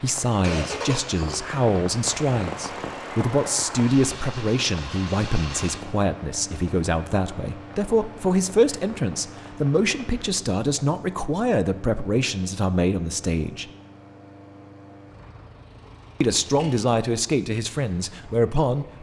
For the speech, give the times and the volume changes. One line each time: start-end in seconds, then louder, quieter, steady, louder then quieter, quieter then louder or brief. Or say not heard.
0.0-13.7 steady
16.2-18.9 brief.